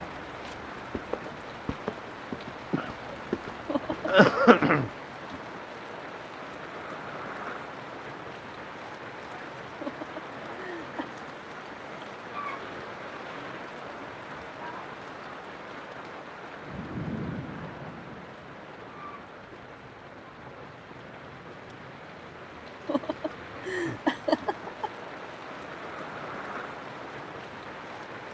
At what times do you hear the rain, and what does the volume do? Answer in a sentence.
The rain can be heard from 0.0 to 28.2 s, getting quieter.